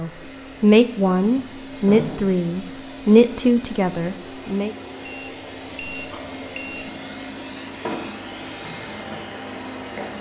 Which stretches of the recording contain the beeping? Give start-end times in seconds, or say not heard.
5.0-7.0.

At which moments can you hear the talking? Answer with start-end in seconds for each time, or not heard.
0.0-4.8.